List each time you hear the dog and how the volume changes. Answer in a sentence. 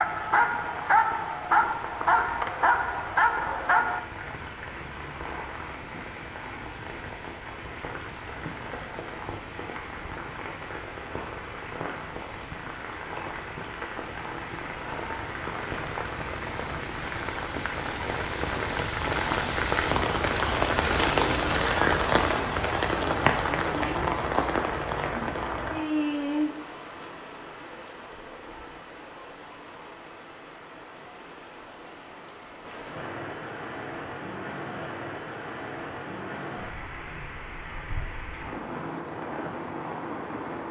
You can hear the dog from 0.0 to 4.0 s, at a steady volume.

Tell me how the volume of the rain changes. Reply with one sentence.
The volume of the rain goes up, then down.